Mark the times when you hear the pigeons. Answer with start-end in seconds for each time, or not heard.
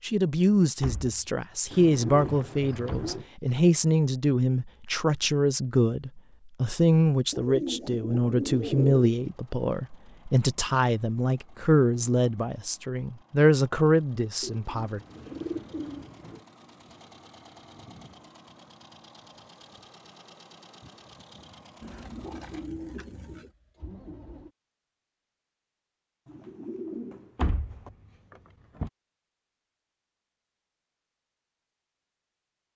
1.7-3.2, 7.3-9.0, 14.4-16.4, 21.8-23.5, 26.2-27.9.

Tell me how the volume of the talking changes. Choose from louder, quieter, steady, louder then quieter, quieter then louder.
steady.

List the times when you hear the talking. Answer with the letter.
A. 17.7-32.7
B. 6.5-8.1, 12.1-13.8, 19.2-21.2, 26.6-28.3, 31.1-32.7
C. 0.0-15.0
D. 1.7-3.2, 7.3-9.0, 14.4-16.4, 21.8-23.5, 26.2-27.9
C.